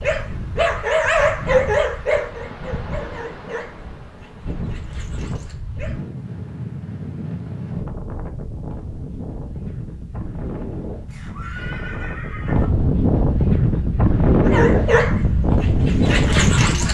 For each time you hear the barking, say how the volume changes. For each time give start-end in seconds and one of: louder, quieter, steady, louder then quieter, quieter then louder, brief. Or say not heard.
0.0-6.0 quieter
14.4-16.8 brief.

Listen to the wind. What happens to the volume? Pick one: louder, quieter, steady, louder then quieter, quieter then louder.
louder.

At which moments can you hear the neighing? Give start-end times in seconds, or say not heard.
11.1-12.7.